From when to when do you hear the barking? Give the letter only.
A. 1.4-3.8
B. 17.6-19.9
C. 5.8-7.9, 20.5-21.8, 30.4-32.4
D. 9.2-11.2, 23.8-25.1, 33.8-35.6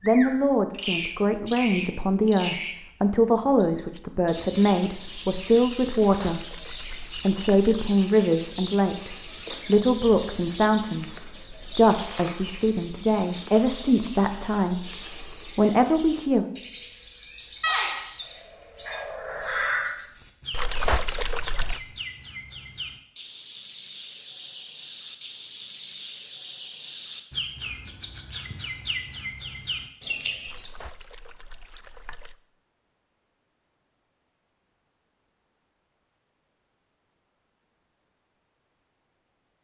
B.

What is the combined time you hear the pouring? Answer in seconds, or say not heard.
5 s.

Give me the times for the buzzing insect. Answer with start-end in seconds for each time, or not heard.
not heard.